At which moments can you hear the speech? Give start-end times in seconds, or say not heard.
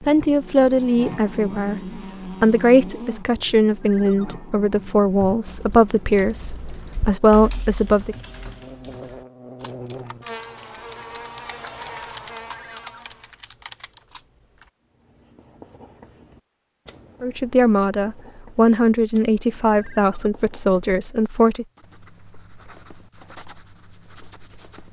0.0-8.2, 17.2-21.6.